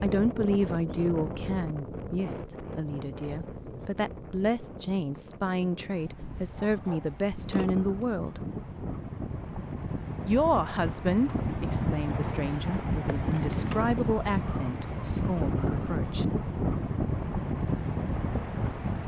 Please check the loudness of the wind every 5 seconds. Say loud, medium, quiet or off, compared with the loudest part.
medium, medium, loud, loud.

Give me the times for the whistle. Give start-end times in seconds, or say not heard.
not heard.